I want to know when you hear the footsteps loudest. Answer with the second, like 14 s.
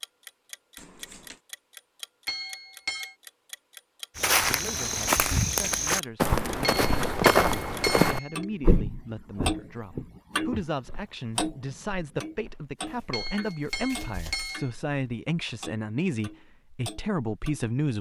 7 s.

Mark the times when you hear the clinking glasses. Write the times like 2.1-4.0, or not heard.
2.2-3.1, 6.6-8.4, 13.1-14.7.